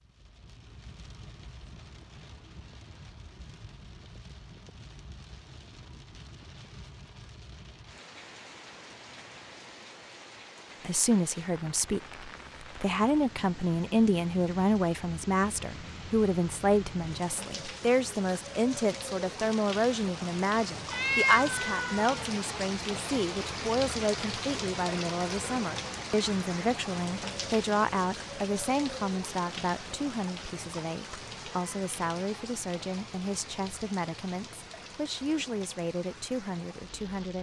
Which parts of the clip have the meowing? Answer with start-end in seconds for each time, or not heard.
20.9-22.1.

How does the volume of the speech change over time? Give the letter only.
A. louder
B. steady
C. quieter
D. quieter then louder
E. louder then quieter
C.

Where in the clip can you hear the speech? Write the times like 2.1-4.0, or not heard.
10.8-37.3.